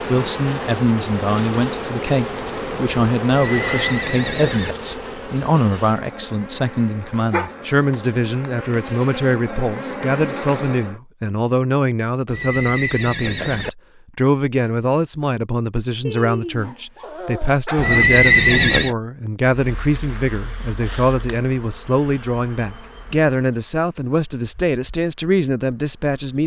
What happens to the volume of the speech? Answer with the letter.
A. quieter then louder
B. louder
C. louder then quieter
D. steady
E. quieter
D.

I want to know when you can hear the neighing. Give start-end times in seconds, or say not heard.
3.4-4.8, 12.2-13.7, 17.8-18.9.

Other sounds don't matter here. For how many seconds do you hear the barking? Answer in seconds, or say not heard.
3 s.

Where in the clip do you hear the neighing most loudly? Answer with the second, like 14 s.
18 s.